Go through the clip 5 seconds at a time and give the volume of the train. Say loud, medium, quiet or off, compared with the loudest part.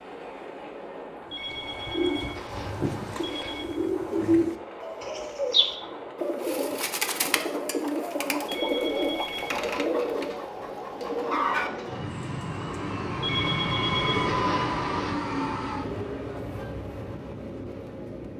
medium, medium, loud, loud.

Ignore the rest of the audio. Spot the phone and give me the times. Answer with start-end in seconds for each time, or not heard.
1.3-3.6, 8.4-9.7, 13.2-15.1.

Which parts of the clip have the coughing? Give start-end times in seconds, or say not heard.
not heard.